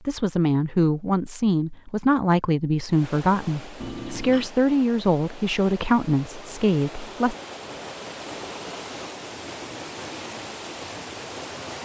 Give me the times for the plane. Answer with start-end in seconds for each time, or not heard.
not heard.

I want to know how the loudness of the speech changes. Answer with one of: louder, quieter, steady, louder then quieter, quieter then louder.
steady.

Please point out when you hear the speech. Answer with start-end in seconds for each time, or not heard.
0.1-7.3.